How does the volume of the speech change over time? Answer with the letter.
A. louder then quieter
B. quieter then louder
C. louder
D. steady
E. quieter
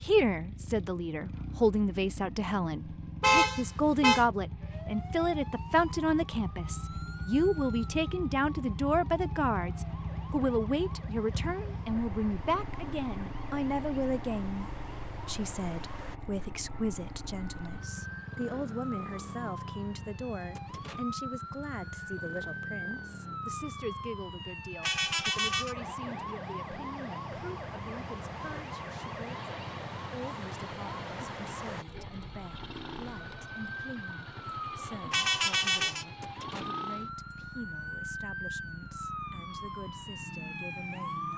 E.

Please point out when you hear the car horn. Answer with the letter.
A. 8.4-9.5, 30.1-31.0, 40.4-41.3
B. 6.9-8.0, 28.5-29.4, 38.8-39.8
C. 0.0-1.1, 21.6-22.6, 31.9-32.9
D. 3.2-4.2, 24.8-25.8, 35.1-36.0
D.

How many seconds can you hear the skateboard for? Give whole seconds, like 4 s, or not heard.
not heard.